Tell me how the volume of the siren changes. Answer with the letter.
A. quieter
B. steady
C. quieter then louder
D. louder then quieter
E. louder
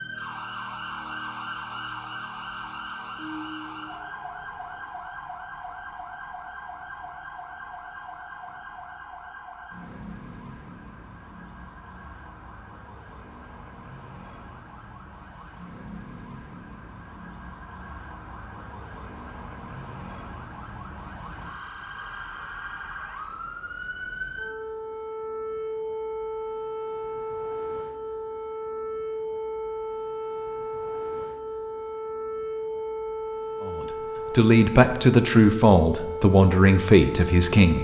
C.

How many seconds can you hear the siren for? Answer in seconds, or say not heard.
38 s.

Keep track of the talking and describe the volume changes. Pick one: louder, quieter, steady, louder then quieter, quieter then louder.
steady.